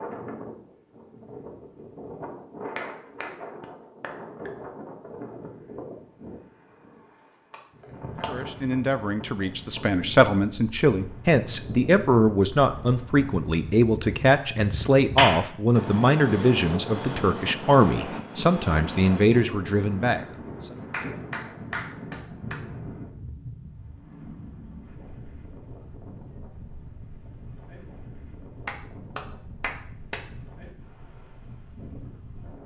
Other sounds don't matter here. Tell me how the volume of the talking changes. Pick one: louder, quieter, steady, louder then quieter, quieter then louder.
steady.